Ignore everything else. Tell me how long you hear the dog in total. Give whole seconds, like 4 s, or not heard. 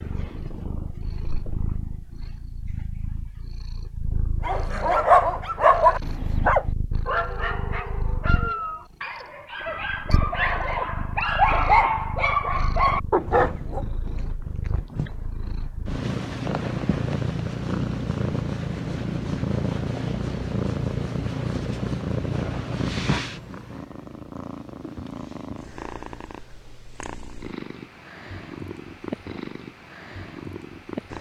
9 s.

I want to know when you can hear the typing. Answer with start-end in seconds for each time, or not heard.
not heard.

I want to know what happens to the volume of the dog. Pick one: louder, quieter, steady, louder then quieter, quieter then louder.
quieter then louder.